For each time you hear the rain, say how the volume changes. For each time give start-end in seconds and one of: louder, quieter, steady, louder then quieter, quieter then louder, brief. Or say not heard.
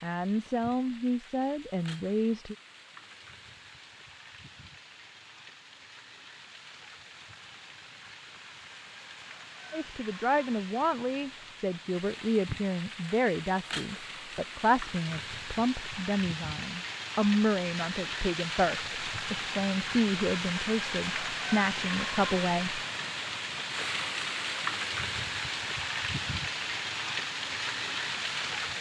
0.0-28.7 louder.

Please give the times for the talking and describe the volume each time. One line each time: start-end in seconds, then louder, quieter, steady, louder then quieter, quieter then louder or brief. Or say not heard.
0.0-2.5 brief
9.7-22.8 steady.